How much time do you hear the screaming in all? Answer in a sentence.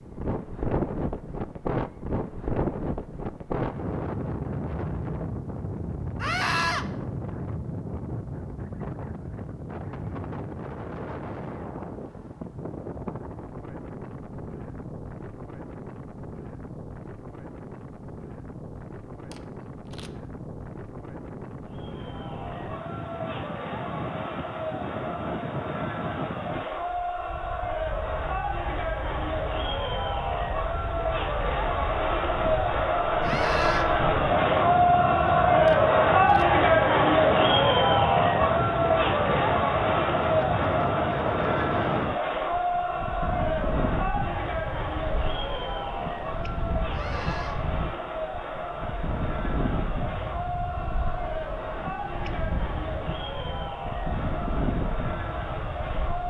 You can hear the screaming for 2 seconds altogether.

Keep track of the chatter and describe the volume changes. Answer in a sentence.
The volume of the chatter goes up, then down.